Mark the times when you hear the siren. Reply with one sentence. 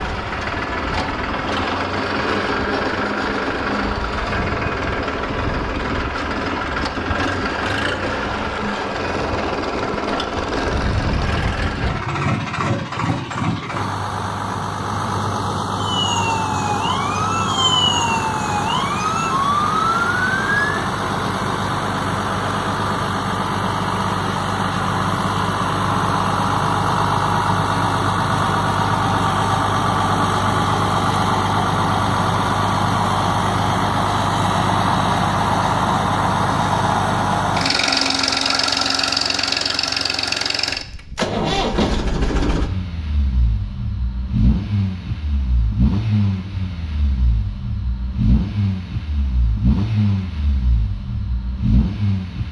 You can hear the siren from 15.8 to 20.8 s.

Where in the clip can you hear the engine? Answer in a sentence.
The engine can be heard from 0.0 to 52.4 s.